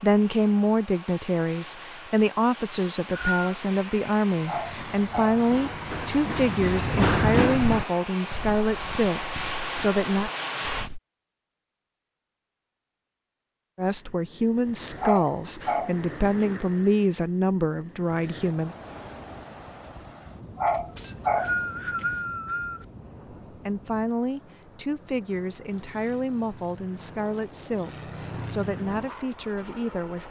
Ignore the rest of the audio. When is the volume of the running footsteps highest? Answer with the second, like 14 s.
7 s.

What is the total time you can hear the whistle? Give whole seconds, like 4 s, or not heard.
3 s.